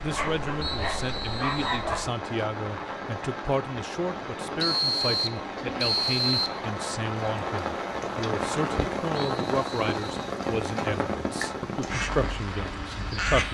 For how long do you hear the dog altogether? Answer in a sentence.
You can hear the dog for 2 seconds altogether.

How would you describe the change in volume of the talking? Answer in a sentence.
The volume of the talking stays about the same.